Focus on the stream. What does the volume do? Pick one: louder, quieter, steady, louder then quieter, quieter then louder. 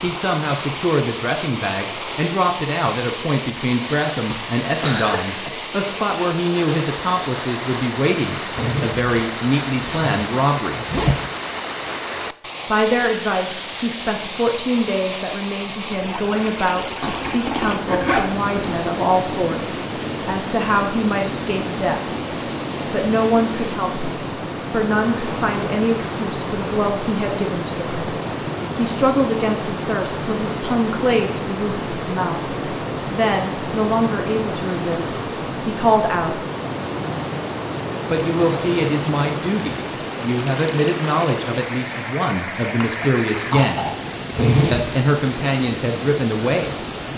steady.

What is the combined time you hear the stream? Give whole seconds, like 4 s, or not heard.
47 s.